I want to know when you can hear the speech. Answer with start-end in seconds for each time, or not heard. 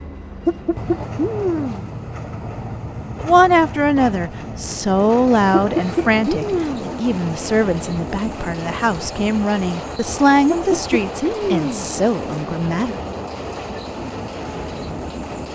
3.2-12.9.